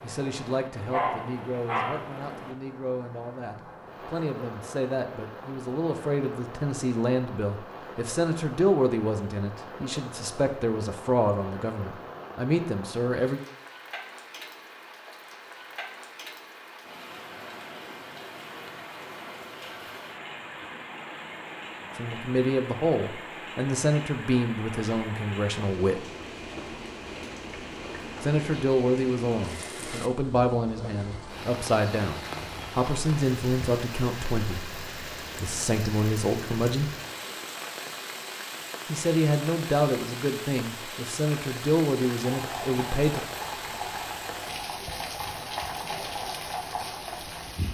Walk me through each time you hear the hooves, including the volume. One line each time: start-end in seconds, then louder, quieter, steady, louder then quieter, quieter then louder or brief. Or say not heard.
42.1-47.6 steady.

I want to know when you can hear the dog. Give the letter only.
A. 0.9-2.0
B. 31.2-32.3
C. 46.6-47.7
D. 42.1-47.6
A.